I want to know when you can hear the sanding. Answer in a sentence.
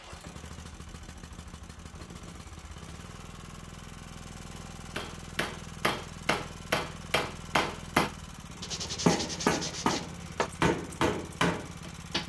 You can hear the sanding from 8.6 to 10.5 s.